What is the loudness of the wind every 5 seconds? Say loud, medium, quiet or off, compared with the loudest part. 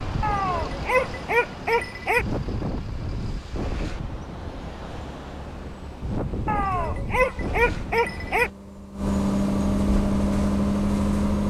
loud, loud, off.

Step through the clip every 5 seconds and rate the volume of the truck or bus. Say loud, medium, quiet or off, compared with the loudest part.
quiet, medium, loud.